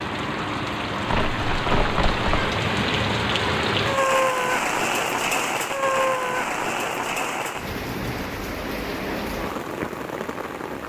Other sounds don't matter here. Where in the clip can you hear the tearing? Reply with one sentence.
The tearing can be heard from 1.1 to 2.5 s.